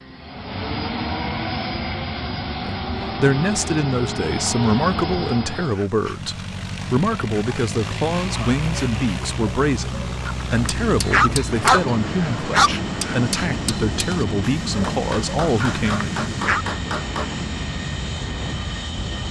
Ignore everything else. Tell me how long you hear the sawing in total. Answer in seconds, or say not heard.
not heard.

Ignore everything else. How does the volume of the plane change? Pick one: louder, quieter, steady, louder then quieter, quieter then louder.
steady.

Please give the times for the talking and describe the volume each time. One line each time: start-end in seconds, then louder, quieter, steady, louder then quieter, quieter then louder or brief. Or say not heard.
2.6-16.1 steady.